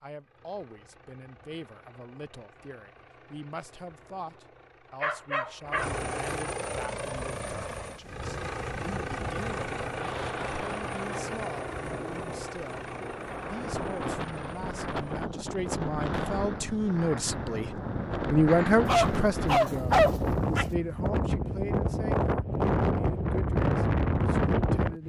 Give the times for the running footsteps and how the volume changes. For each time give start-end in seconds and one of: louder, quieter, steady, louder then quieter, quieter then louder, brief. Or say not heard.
not heard.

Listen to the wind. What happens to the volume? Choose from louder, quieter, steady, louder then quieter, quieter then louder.
louder.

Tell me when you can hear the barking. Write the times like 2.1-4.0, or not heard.
5.0-5.9, 18.9-20.6.